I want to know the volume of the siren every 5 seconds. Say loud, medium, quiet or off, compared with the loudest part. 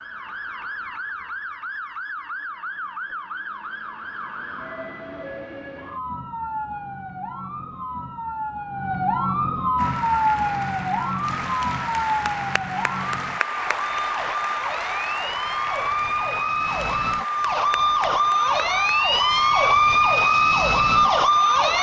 quiet, medium, medium, loud, loud.